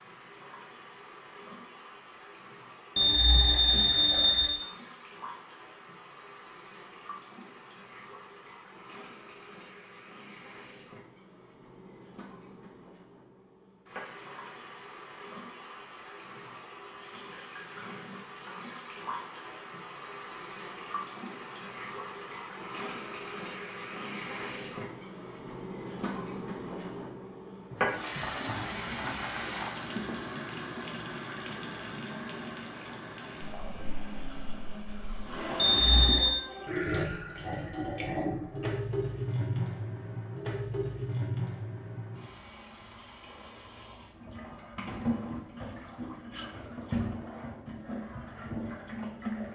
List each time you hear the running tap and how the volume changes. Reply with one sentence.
You can hear the running tap from 0.0 to 49.4 s, getting louder.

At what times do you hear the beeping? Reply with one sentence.
You can hear the beeping from 3.0 to 4.5 s and from 35.5 to 36.4 s.